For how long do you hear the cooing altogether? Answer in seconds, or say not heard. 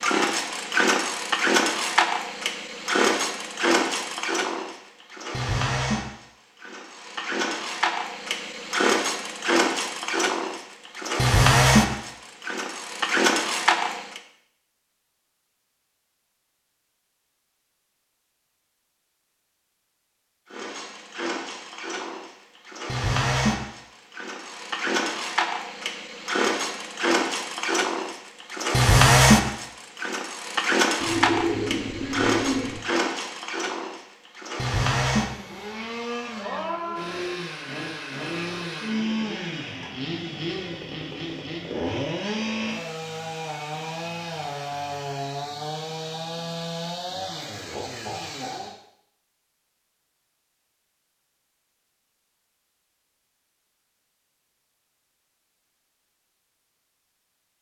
2 s.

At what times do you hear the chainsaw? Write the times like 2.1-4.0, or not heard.
0.0-14.2, 20.5-48.8.